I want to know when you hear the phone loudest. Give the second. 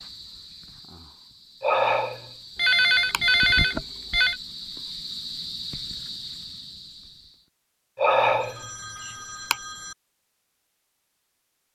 3 s.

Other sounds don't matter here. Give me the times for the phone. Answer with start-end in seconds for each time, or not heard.
2.5-4.3, 8.2-9.9.